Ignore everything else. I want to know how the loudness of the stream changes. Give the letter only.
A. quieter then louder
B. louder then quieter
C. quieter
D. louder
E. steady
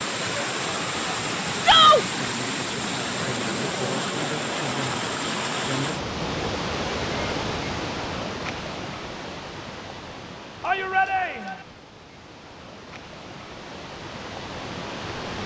C.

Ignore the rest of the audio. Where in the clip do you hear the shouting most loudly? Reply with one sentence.
The volume of the shouting peaks at 2 seconds.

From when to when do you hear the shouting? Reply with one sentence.
You can hear the shouting from 1.6 to 2.0 s and from 10.6 to 11.6 s.